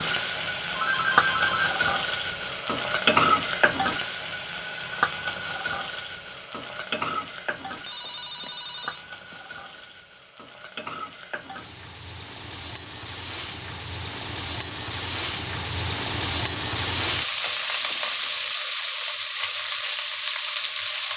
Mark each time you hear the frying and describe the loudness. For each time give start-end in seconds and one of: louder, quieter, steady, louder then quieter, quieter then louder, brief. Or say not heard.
0.0-21.1 quieter then louder.